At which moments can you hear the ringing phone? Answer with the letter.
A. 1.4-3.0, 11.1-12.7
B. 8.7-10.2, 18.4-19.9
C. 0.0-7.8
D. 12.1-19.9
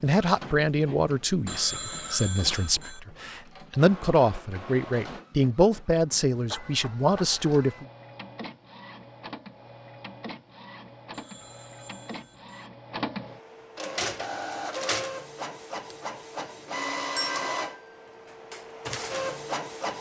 A.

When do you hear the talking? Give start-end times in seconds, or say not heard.
0.0-7.8.